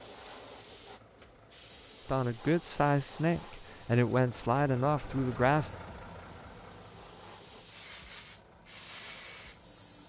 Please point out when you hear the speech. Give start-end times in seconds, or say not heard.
2.0-5.7.